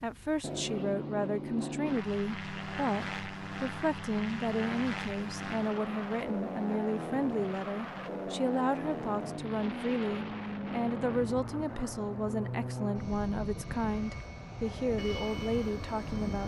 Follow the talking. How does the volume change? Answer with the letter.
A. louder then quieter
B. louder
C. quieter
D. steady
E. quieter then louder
D.